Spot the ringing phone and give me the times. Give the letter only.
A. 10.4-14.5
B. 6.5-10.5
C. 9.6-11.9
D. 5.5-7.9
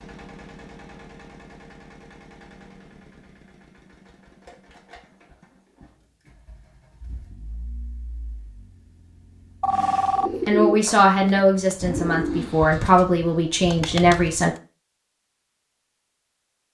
C.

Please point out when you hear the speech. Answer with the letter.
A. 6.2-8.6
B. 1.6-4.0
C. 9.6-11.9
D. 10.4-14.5
D.